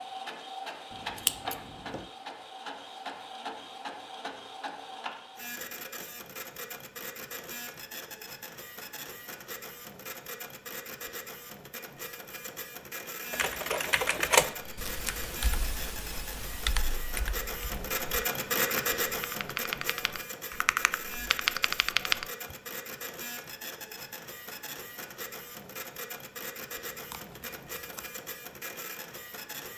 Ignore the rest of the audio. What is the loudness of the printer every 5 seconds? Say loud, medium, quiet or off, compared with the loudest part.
medium, medium, medium, loud, medium, medium.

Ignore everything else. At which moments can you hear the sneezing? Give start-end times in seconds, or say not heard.
not heard.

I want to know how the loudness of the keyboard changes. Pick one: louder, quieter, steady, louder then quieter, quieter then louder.
quieter then louder.